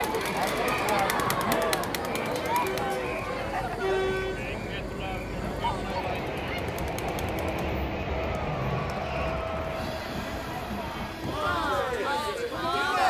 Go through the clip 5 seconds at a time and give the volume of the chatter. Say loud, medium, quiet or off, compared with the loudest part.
loud, medium, loud.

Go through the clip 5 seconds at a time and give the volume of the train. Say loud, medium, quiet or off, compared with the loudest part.
medium, loud, medium.